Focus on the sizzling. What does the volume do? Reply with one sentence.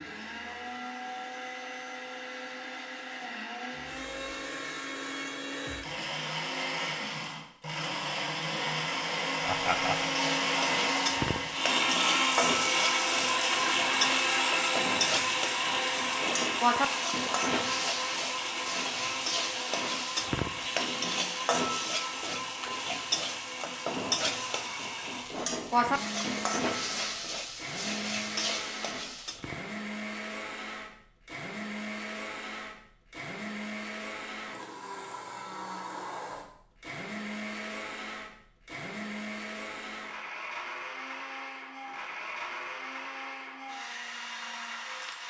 The loudness of the sizzling stays about the same.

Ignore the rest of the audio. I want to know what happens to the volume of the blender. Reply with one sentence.
The volume of the blender goes up, then down.